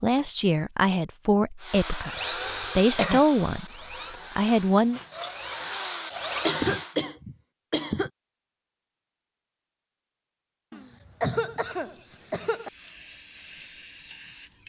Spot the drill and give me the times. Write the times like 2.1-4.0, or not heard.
1.6-7.0.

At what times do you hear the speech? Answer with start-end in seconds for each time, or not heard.
0.0-3.6, 4.3-5.0.